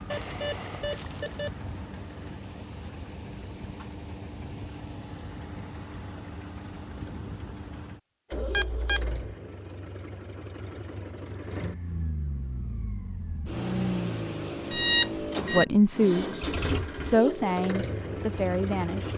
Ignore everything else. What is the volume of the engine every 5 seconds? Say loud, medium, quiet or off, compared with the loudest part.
medium, medium, loud, loud.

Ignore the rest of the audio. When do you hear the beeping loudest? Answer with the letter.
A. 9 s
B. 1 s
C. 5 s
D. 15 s
D.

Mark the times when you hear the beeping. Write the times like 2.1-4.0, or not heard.
0.1-1.6, 8.3-9.3, 14.7-15.7.